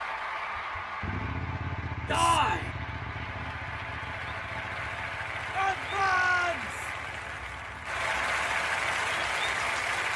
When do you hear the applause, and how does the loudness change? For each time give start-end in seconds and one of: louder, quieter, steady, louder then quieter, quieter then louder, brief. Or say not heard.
0.0-10.1 louder.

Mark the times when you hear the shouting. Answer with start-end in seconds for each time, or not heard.
2.0-2.7, 5.5-6.9.